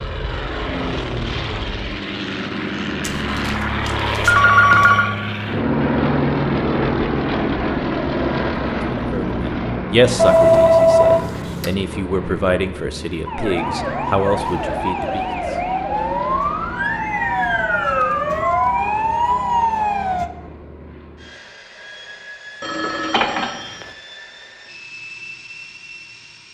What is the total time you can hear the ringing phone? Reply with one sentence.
The ringing phone can be heard for 5 seconds in total.